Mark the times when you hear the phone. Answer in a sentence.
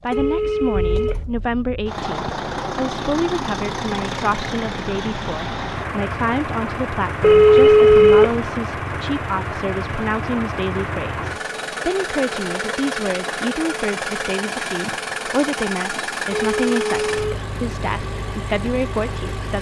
The phone can be heard from 0.1 to 1.2 s, from 7.2 to 8.3 s and from 16.3 to 17.4 s.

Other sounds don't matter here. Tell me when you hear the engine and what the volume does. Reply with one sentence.
You can hear the engine from 0.0 to 19.5 s, at a steady volume.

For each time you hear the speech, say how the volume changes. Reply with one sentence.
You can hear the speech from 0.0 to 19.5 s, at a steady volume.